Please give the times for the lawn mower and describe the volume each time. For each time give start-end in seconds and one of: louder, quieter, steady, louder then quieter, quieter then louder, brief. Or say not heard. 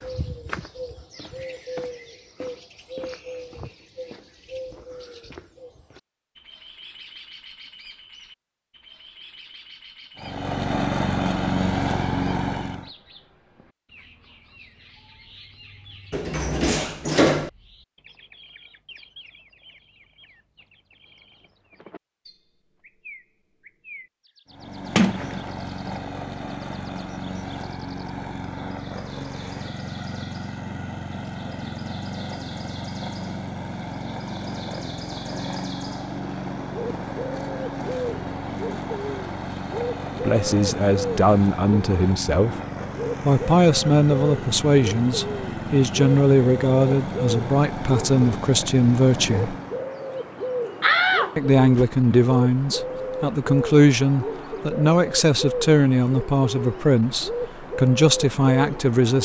10.2-12.9 brief
24.4-49.9 steady.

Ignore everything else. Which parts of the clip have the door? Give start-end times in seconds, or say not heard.
16.1-17.5, 24.9-26.0, 50.8-51.9.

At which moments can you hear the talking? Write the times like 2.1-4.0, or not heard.
40.2-42.5, 43.2-49.5, 51.4-59.2.